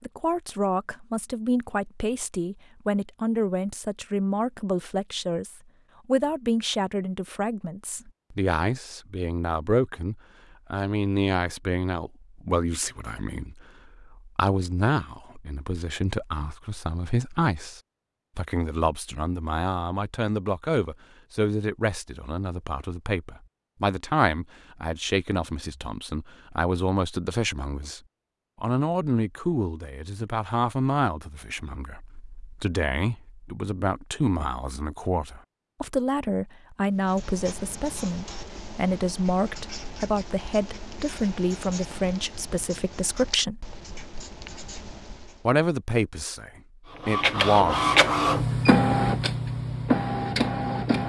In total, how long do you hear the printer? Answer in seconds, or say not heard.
4 s.